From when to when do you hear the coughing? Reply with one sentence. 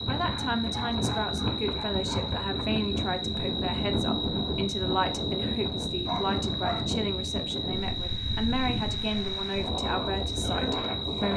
You can't hear the coughing here.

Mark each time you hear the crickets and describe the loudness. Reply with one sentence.
You can hear the crickets from 0.0 to 11.3 s, at a steady volume.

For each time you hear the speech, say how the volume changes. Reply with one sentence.
You can hear the speech from 0.1 to 11.3 s, at a steady volume.